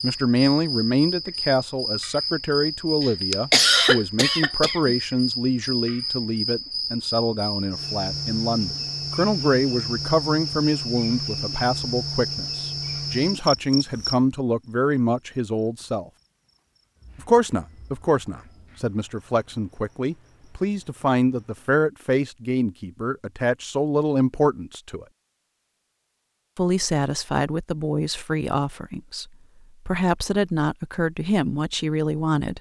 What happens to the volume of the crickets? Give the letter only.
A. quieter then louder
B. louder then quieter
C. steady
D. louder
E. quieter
E.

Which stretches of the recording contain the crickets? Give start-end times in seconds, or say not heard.
0.0-21.8.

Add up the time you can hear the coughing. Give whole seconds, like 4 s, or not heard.
2 s.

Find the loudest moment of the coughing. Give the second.
4 s.